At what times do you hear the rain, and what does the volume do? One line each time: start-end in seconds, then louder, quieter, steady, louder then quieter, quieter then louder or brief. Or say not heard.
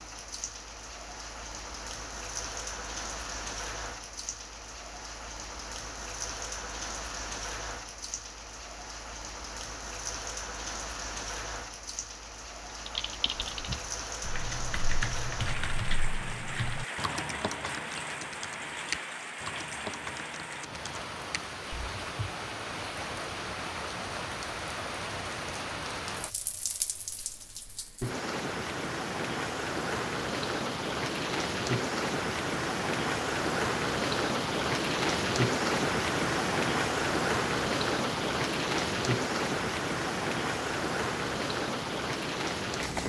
0.0-43.0 louder.